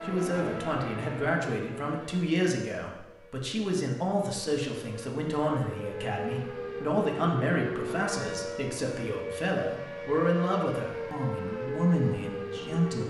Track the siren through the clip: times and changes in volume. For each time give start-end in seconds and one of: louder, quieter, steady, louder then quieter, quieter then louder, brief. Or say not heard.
0.0-13.0 quieter then louder.